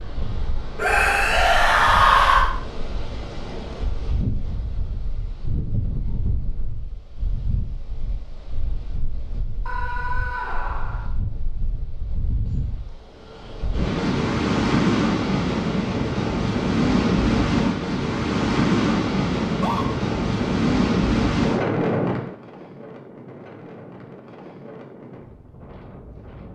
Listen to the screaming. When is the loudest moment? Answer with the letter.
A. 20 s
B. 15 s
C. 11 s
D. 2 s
D.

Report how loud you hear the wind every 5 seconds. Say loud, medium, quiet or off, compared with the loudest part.
quiet, quiet, medium, loud, loud, quiet.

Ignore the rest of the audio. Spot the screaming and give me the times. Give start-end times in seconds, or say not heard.
0.8-2.5, 9.7-11.1, 19.4-19.9.